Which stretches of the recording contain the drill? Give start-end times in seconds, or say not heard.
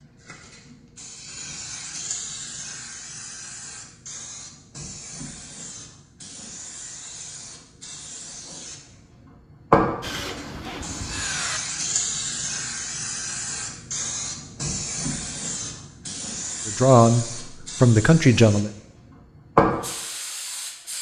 10.0-11.6.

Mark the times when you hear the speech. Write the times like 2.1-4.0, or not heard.
16.6-18.7.